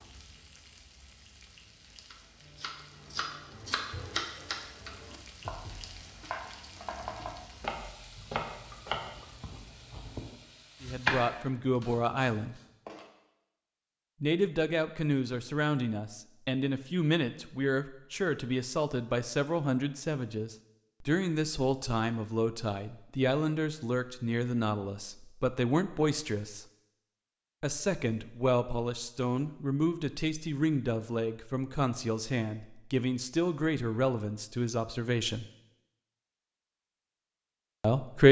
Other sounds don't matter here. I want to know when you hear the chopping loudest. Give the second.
11 s.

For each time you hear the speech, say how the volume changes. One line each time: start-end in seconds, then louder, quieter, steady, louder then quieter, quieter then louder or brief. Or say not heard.
10.8-12.6 brief
14.2-26.6 steady
27.6-35.5 steady
37.8-38.2 brief.